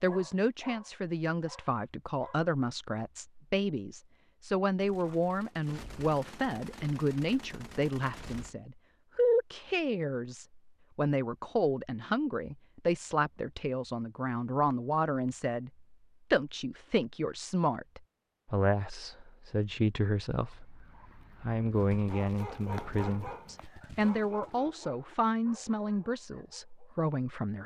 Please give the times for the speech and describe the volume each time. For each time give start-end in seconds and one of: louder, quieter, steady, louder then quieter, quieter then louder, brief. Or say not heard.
0.0-27.6 steady.